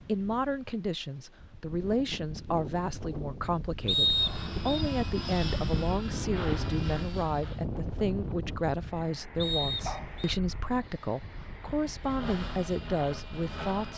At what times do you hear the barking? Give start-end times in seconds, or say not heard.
9.8-11.4.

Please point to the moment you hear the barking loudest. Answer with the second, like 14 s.
10 s.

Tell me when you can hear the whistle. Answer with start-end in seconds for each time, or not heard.
3.9-4.8, 9.3-10.3.